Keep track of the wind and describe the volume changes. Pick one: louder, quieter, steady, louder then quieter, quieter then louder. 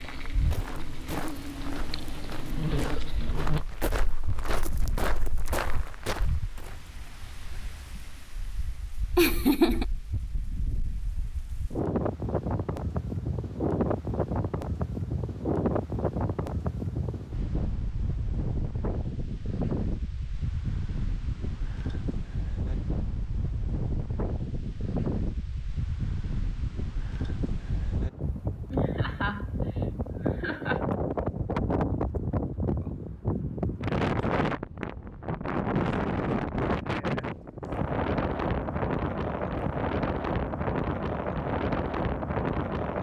louder.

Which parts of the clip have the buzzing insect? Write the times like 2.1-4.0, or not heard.
0.0-3.6.